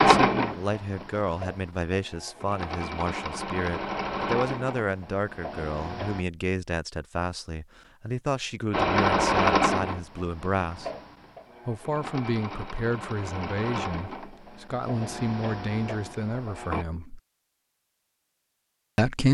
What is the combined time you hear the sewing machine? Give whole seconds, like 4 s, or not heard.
14 s.